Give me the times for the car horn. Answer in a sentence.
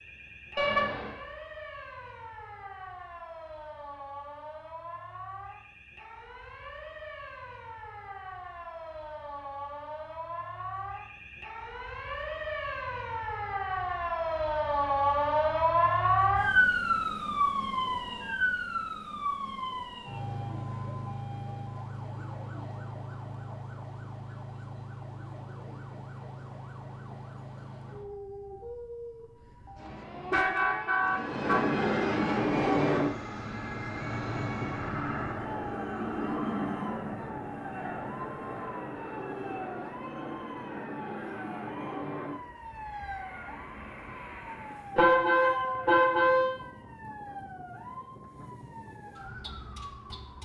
You can hear the car horn from 0.6 to 1.1 s, from 29.8 to 31.8 s and from 45.0 to 46.5 s.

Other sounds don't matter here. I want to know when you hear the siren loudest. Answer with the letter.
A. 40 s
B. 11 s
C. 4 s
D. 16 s
D.